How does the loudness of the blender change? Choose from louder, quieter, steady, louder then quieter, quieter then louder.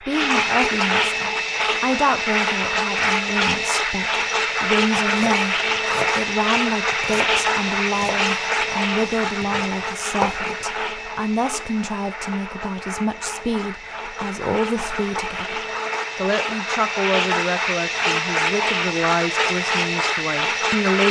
quieter then louder.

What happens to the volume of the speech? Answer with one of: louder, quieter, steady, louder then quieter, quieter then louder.
steady.